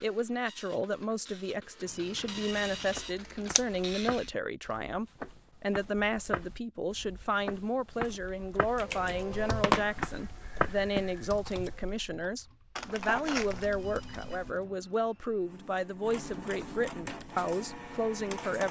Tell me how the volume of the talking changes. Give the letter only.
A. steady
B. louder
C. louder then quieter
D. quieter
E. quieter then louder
A.